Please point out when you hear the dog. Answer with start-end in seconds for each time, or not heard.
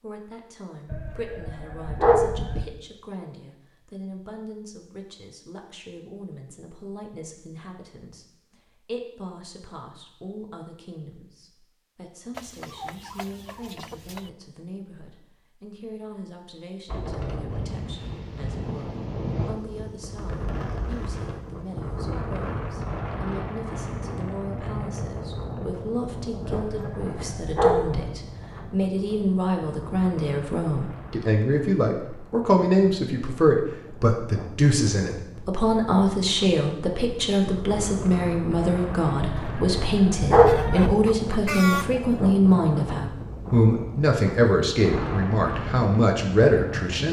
0.9-2.6, 26.4-28.1, 39.2-41.0.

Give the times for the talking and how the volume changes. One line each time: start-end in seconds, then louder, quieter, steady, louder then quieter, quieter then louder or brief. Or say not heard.
0.0-47.0 louder.